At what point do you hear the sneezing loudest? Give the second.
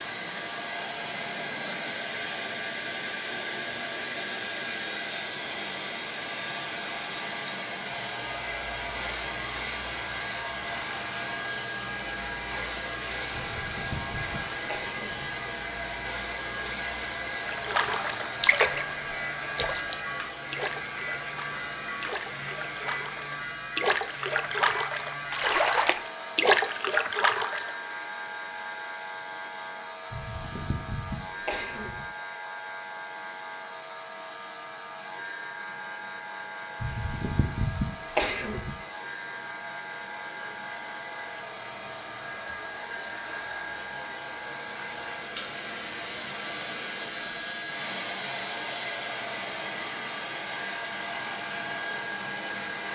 38 s.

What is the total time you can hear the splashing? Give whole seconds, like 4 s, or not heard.
10 s.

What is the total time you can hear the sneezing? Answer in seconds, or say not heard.
6 s.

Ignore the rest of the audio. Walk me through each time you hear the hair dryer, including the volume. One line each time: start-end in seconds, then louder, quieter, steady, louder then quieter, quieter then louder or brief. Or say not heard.
0.0-52.9 quieter then louder.